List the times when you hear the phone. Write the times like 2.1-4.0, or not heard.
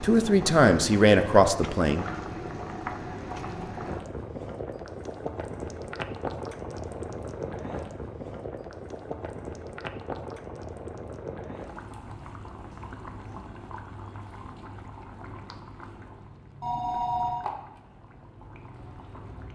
16.6-17.4.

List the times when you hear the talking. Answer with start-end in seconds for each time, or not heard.
0.0-2.0.